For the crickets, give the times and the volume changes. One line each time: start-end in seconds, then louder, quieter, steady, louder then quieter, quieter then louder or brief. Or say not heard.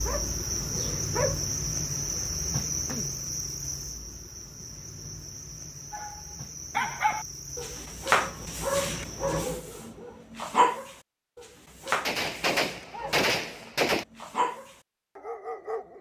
0.0-9.5 quieter.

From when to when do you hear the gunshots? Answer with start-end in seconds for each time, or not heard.
12.1-14.1.